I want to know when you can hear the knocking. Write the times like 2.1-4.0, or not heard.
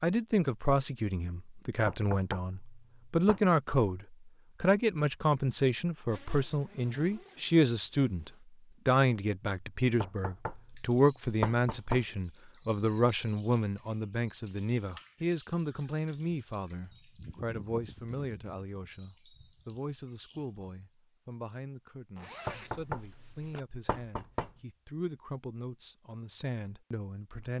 1.9-3.5, 10.0-12.1, 22.4-24.5.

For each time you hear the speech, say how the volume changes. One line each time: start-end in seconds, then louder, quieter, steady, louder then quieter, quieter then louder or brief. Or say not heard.
0.0-27.5 quieter.